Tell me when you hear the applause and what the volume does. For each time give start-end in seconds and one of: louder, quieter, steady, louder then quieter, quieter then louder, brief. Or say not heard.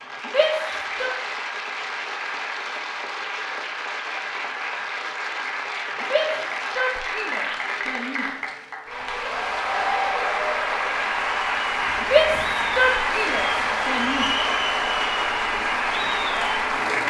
0.0-17.0 louder.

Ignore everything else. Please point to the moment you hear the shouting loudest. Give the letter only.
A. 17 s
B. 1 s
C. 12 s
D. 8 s
C.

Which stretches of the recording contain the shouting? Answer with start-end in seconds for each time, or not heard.
0.2-1.1, 6.0-8.2, 12.0-14.2.